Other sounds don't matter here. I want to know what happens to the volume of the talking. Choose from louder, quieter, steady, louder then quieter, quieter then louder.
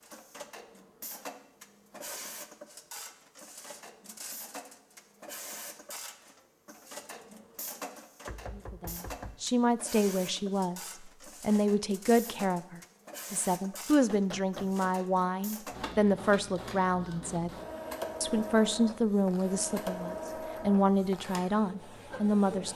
steady.